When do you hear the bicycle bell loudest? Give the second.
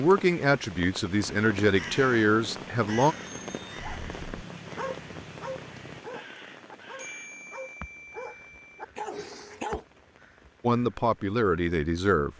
7 s.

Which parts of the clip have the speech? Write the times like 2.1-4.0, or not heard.
0.0-3.1, 10.6-12.3.